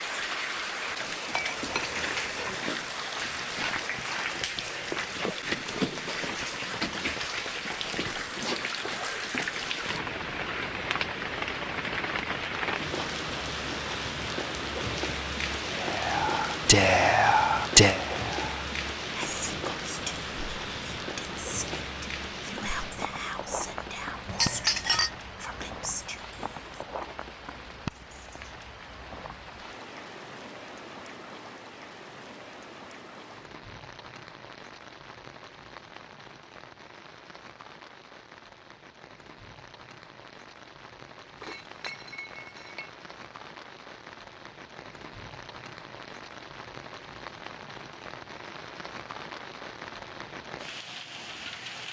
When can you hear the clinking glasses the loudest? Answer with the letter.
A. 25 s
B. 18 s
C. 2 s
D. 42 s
A.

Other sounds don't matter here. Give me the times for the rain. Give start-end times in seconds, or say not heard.
0.0-51.8.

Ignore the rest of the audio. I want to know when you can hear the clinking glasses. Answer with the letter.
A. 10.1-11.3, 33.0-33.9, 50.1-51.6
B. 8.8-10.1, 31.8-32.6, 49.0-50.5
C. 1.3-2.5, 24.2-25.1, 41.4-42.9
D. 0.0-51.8
C.